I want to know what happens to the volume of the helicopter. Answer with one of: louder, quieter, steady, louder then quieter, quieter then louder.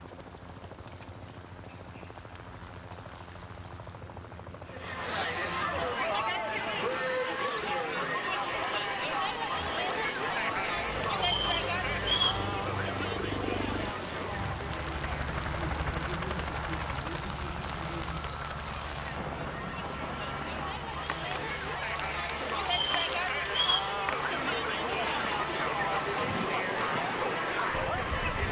louder then quieter.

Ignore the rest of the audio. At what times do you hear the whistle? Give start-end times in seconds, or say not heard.
11.2-12.4, 22.6-23.9.